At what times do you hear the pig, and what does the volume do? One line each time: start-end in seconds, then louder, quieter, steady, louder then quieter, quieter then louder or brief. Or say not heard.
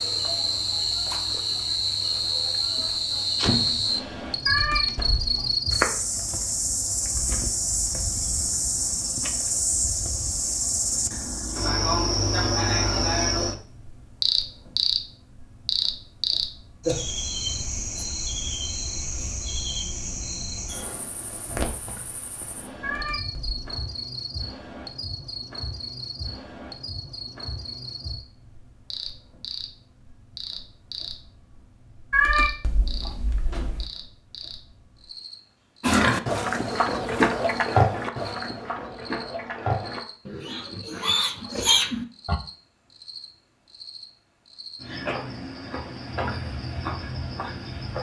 35.8-42.4 quieter then louder.